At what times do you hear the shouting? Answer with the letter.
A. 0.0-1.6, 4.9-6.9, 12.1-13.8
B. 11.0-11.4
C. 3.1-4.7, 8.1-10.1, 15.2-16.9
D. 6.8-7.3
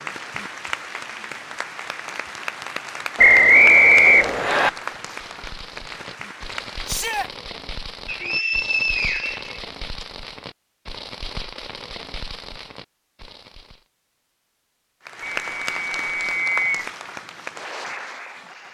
D.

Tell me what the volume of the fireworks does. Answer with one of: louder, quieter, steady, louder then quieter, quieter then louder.
steady.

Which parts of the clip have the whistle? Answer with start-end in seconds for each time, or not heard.
3.1-4.7, 8.1-10.1, 15.2-16.9.